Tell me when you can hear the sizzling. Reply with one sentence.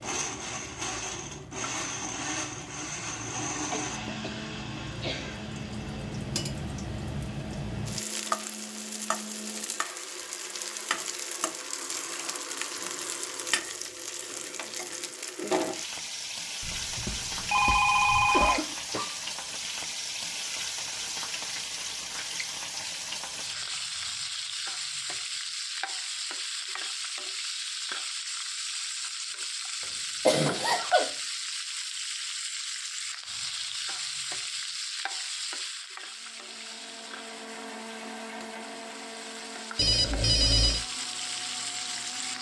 You can hear the sizzling from 0.0 to 42.3 s.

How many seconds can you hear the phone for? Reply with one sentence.
The phone can be heard for 3 seconds in total.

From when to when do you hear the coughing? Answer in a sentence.
The coughing can be heard from 3.7 to 5.4 s, from 18.1 to 19.1 s and from 30.2 to 31.1 s.